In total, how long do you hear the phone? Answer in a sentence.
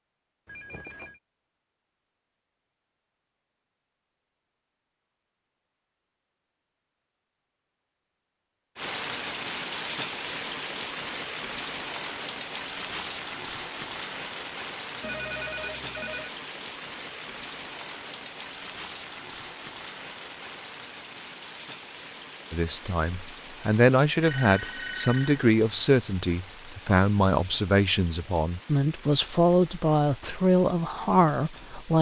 The phone can be heard for 3 seconds in total.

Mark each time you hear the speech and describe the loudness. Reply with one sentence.
The speech can be heard from 22.5 to 31.9 s, at a steady volume.